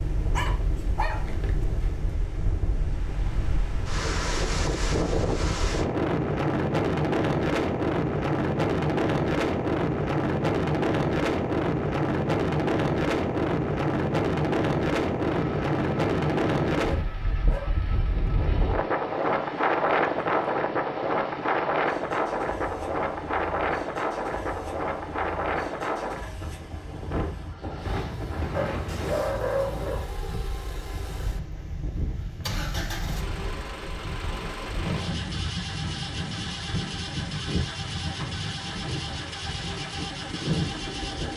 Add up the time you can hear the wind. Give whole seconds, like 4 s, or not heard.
41 s.